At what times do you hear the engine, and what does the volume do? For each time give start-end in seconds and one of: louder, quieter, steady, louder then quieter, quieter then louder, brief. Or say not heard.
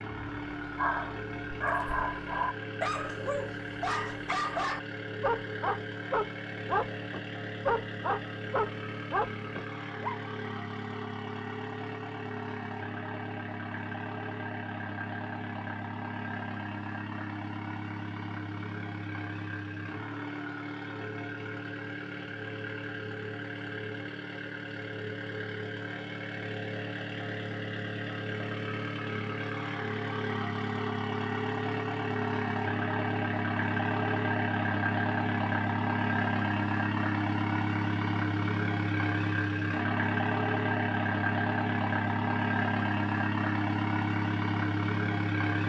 0.0-45.6 louder.